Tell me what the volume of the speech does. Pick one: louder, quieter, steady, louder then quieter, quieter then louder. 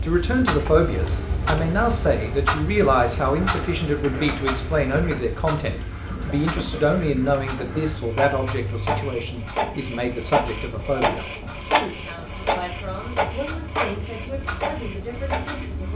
quieter.